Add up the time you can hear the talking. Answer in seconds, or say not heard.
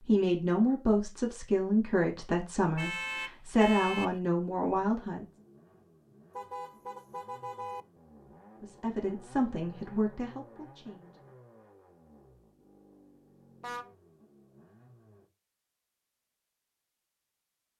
8 s.